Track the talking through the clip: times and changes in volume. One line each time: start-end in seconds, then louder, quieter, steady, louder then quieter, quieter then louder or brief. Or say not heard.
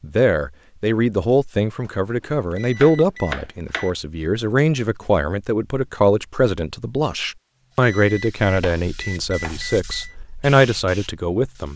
0.0-11.7 steady.